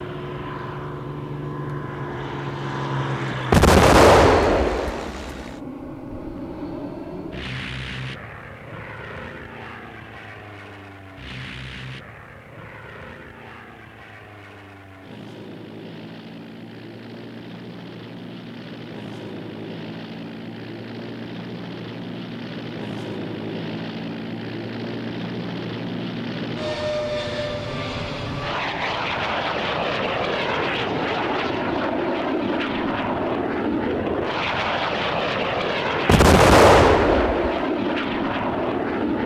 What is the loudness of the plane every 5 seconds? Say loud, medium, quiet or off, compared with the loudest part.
medium, medium, quiet, quiet, medium, loud, loud, loud.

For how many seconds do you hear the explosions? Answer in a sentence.
The explosions can be heard for 3 seconds in total.